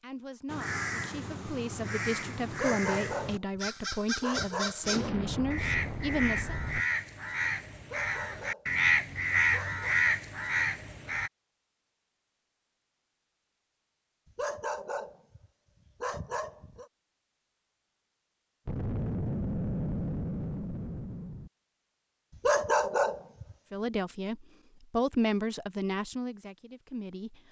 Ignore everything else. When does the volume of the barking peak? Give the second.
23 s.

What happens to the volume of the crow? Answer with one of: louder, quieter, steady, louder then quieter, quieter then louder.
louder.